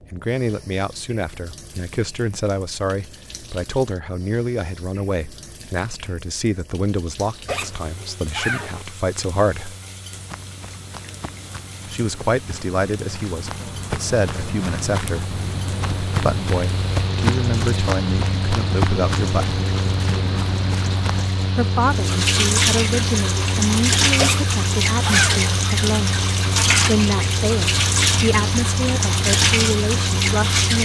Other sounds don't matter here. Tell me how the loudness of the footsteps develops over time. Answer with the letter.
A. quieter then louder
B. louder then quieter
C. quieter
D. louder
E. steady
D.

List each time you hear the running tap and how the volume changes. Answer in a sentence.
The running tap can be heard from 0.0 to 30.7 s, getting louder.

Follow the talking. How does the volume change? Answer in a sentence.
The loudness of the talking stays about the same.